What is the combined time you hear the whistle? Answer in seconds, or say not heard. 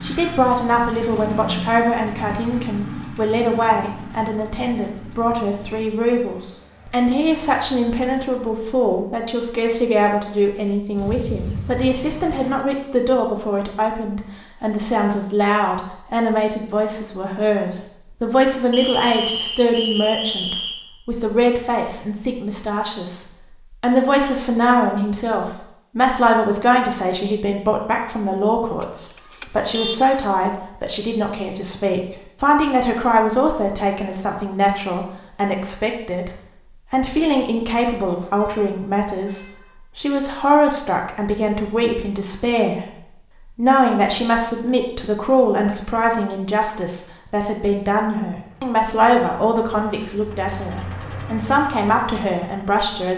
2 s.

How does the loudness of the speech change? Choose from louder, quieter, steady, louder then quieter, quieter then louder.
steady.